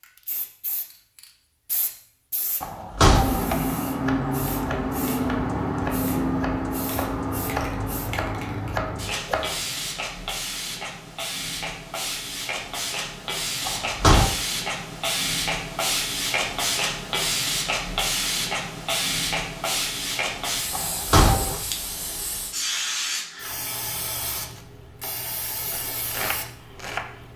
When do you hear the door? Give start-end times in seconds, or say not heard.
2.6-3.5, 13.7-14.3, 20.7-21.6.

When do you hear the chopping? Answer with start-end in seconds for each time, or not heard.
3.4-9.7, 24.5-27.3.